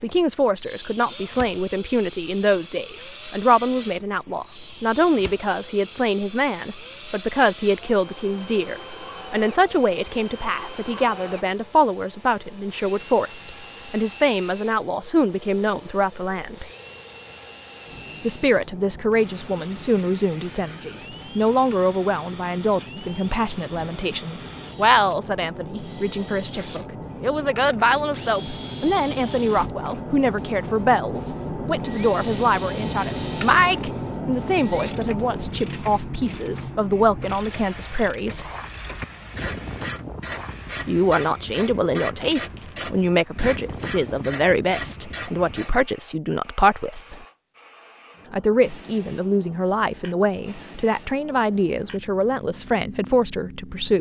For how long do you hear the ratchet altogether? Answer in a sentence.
You can hear the ratchet for 11 seconds altogether.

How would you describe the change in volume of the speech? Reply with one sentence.
The volume of the speech stays about the same.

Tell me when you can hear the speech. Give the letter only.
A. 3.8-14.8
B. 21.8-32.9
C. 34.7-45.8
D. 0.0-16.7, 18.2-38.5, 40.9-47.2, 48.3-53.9
D.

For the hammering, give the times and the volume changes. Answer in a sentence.
You can't hear the hammering here.